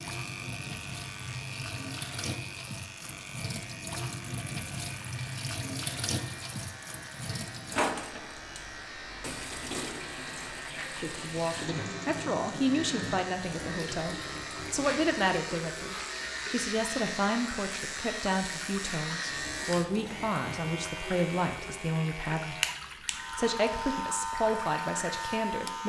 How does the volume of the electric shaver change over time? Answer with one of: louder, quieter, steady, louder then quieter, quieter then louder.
louder.